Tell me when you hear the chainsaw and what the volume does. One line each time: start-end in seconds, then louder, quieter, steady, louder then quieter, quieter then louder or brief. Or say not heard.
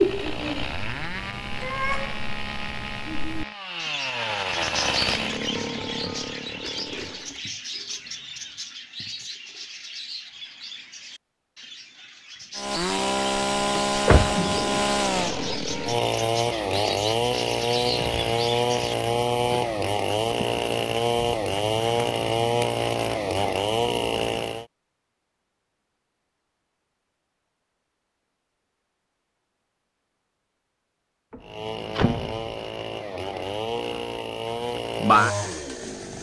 0.0-7.3 louder then quieter
12.6-24.6 steady
31.4-36.1 louder.